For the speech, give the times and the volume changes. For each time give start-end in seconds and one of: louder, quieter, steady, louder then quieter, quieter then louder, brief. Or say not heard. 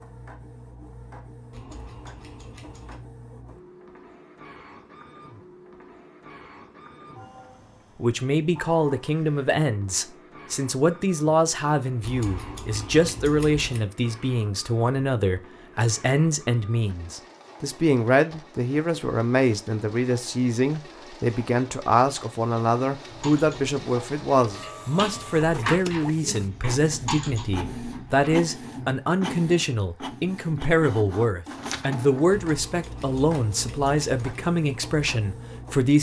8.0-35.9 steady.